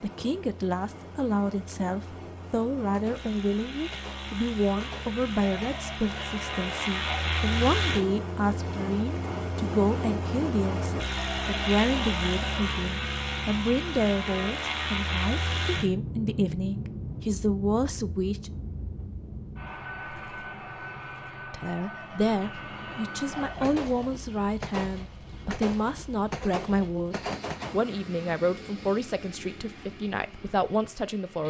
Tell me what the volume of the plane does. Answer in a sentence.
The volume of the plane goes up, then down.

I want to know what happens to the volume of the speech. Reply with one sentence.
The loudness of the speech stays about the same.